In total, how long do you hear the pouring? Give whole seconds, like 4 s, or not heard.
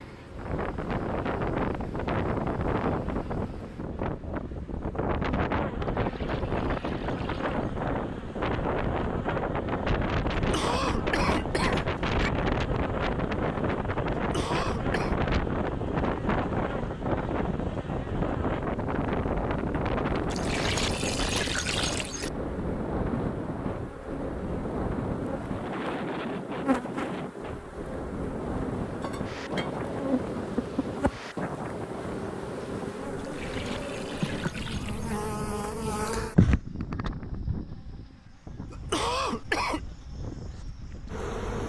6 s.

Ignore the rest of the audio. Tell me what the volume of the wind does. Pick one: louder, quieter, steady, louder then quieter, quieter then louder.
quieter.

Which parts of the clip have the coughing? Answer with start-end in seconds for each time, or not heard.
10.3-12.3, 14.2-15.2, 38.7-39.8.